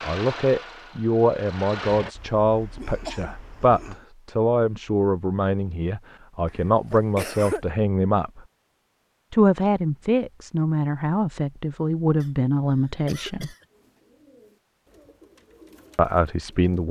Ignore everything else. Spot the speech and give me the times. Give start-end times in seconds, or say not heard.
0.0-8.4, 9.3-13.5, 15.9-16.8.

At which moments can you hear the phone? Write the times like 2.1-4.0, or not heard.
not heard.